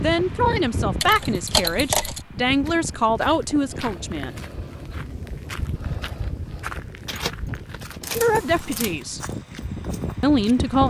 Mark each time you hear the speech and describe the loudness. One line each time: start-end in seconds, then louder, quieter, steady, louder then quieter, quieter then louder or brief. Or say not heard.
0.0-4.3 steady
8.2-9.2 brief
10.2-10.8 brief.